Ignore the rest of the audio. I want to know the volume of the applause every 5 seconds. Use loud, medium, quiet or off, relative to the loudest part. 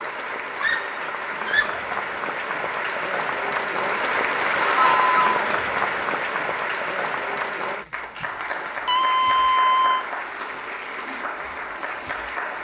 loud, loud, medium.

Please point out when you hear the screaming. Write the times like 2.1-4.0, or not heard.
0.6-1.9, 4.6-5.3, 8.8-10.1.